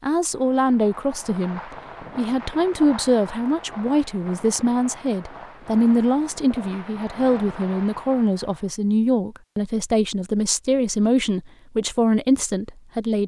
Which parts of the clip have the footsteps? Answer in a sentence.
You can't hear the footsteps here.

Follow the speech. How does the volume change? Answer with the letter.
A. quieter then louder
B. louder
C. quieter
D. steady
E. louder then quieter
D.